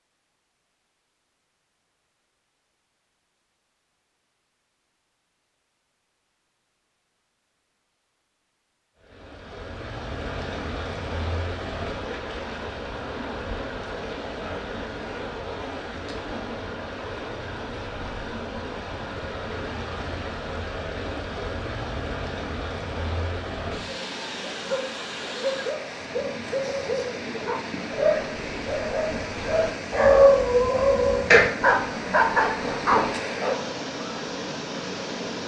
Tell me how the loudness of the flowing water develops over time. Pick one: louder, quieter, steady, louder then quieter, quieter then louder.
steady.